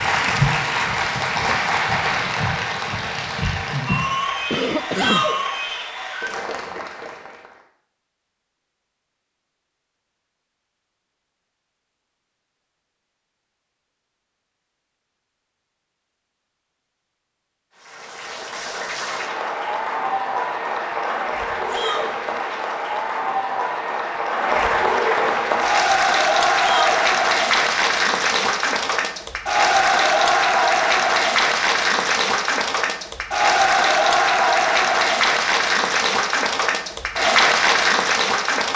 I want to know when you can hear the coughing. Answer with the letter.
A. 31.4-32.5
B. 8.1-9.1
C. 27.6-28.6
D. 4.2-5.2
D.